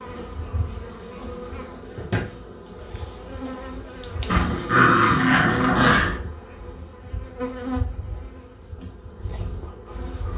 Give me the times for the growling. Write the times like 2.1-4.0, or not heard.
4.2-6.2.